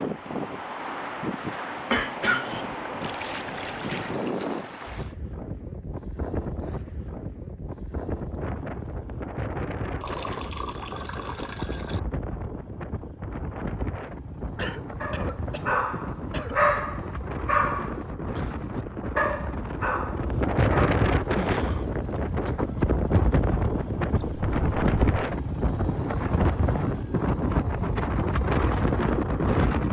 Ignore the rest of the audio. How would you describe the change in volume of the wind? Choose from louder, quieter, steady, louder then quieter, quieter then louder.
louder.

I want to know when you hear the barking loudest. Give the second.
17 s.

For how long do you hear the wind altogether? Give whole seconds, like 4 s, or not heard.
30 s.